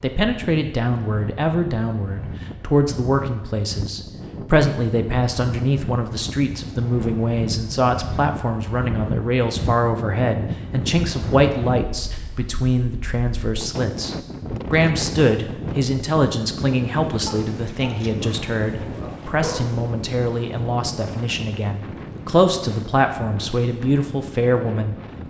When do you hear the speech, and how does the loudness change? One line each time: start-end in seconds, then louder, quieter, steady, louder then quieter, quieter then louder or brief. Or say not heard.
0.0-24.9 steady.